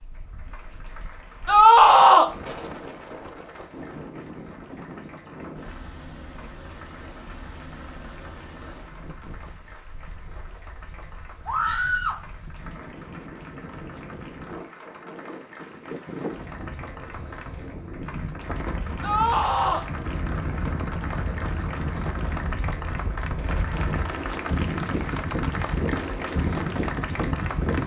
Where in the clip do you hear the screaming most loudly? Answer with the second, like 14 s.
2 s.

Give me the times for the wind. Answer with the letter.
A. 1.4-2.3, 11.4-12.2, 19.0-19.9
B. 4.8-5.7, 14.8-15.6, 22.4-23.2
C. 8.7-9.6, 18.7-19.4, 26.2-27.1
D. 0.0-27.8
D.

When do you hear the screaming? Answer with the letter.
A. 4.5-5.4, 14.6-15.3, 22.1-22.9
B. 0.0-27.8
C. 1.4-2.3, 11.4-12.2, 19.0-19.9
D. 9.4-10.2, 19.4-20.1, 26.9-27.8
C.